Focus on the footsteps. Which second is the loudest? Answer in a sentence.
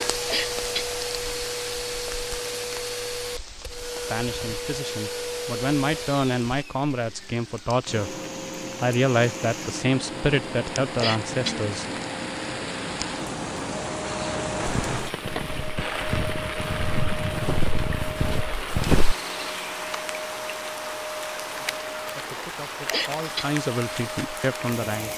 The volume of the footsteps peaks at 19 seconds.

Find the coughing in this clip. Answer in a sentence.
You can hear the coughing from 0.2 to 0.9 s, from 11.0 to 11.6 s and from 22.9 to 23.6 s.